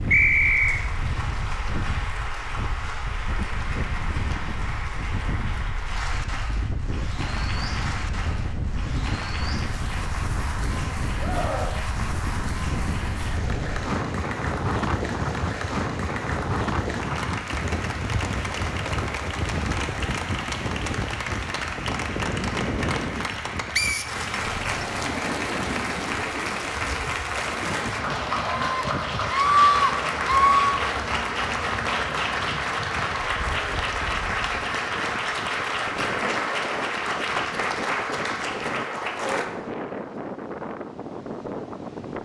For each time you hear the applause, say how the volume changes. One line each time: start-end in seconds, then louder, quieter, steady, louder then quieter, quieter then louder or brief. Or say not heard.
0.0-39.5 louder.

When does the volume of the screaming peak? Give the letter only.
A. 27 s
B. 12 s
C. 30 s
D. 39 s
C.